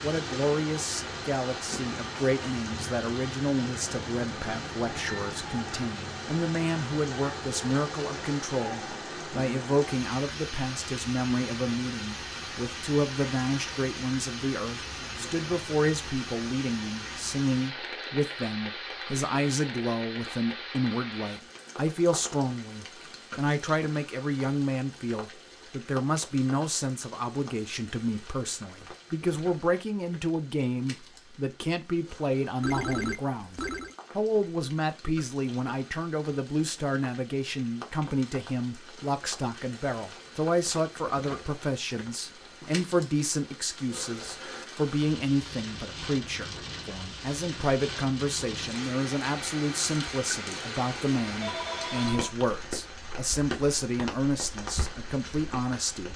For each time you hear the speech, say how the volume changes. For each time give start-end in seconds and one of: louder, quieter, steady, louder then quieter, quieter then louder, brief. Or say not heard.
0.0-56.1 steady.